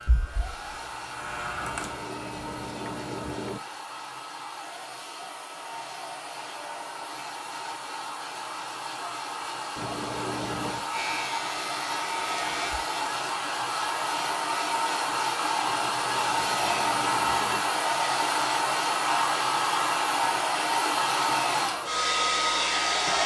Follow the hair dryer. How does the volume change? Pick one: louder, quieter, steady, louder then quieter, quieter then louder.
louder.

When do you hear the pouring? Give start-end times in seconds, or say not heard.
1.6-3.6, 9.8-10.8, 15.6-17.6.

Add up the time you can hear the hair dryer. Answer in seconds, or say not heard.
23 s.